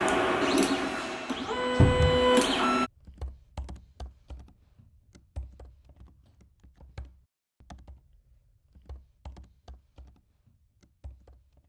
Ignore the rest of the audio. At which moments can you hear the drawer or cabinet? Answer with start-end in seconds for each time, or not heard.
1.8-2.2.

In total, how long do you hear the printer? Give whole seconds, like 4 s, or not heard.
3 s.